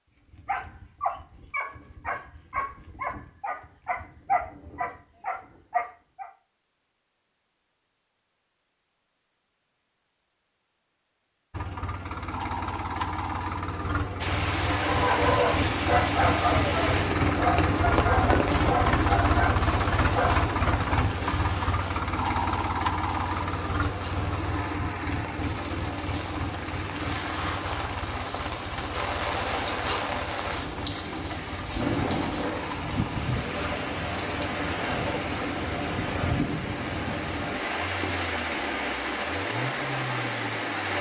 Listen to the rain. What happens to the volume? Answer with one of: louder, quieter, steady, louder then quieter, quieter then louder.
quieter then louder.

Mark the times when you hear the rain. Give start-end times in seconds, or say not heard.
14.2-40.9.